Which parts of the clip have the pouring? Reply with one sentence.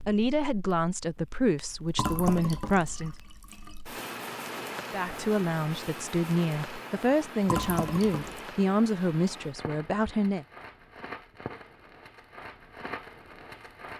You can hear the pouring from 1.9 to 3.8 s and from 7.5 to 8.4 s.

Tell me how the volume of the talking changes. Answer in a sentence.
The loudness of the talking stays about the same.